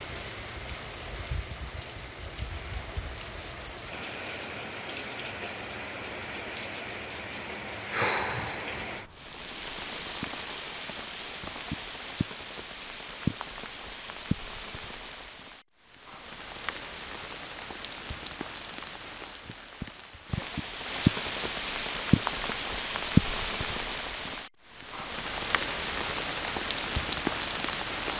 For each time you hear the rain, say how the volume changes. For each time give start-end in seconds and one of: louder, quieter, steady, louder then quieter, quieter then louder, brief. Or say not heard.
0.0-28.1 louder.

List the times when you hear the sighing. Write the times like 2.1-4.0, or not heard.
7.3-8.8.